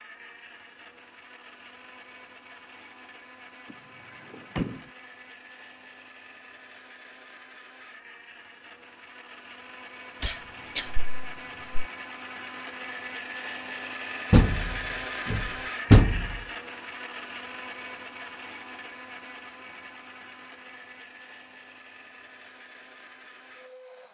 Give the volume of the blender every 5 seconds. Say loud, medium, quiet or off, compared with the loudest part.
medium, medium, loud, loud, medium.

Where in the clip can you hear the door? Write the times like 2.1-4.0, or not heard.
3.6-4.9, 14.3-16.4.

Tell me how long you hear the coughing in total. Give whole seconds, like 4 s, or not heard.
2 s.